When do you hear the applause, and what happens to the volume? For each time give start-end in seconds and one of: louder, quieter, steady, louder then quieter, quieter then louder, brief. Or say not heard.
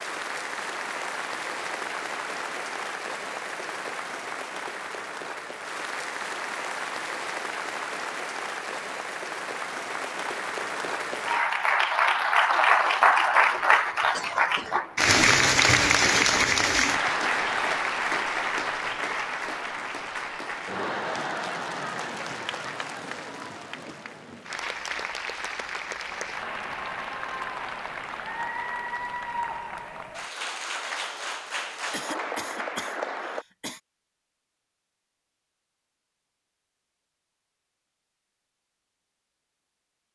0.0-33.5 louder then quieter.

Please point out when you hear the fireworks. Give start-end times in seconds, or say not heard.
not heard.